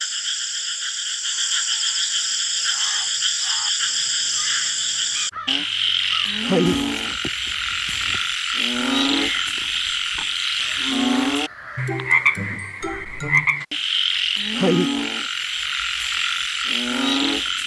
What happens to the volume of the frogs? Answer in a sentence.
The loudness of the frogs stays about the same.